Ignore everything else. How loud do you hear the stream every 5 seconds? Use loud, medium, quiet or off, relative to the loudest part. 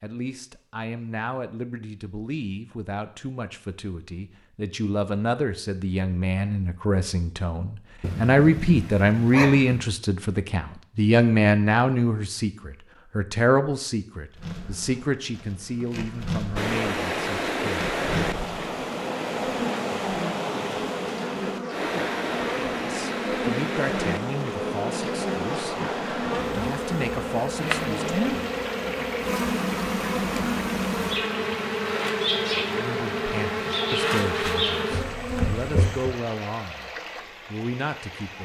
off, off, off, loud, loud, medium, medium, medium.